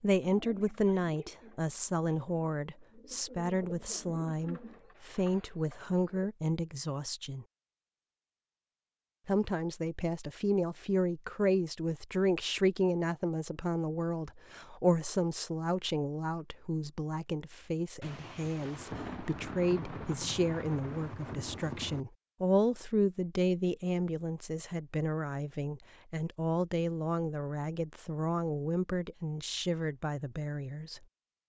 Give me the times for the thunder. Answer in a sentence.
The thunder can be heard from 18.0 to 22.1 s.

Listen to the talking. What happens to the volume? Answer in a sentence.
The loudness of the talking stays about the same.